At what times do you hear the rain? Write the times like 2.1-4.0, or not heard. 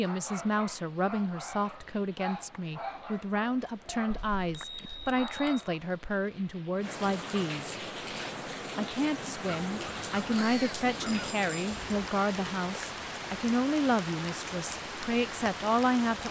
0.0-16.2.